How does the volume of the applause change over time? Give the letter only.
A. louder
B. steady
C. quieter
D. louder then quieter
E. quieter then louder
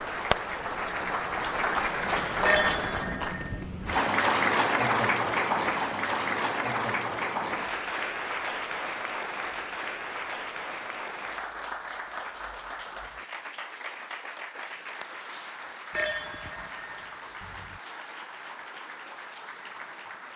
C.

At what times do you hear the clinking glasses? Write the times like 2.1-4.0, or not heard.
2.5-3.5, 15.9-17.8.